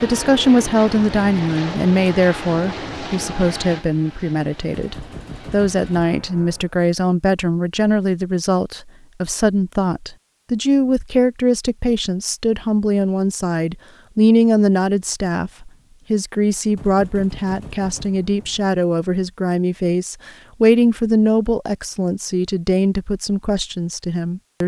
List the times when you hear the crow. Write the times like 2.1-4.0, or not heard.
not heard.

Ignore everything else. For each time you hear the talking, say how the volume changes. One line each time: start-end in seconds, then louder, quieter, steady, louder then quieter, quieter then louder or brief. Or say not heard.
0.0-24.6 steady.